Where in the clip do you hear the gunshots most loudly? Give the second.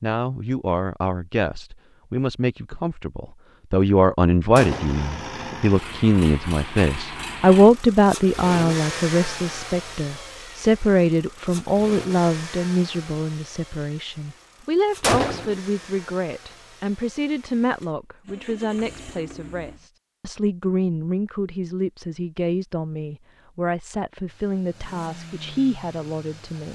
15 s.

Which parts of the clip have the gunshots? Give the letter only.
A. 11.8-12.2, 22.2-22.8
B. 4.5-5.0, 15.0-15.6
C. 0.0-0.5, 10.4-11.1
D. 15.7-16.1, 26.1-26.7
B.